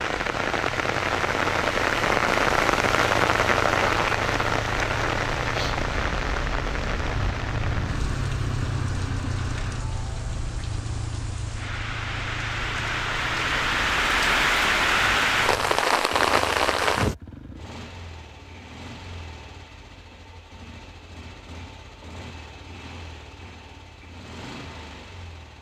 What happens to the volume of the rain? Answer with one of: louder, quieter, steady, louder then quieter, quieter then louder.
quieter then louder.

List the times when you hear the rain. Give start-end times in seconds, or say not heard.
0.0-17.1.